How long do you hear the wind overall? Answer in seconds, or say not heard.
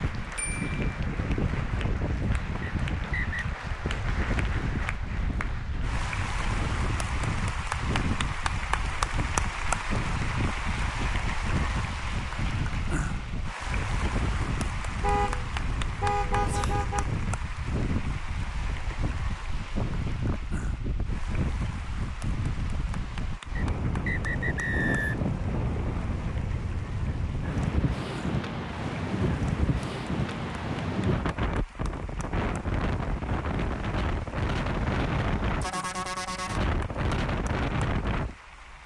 39 s.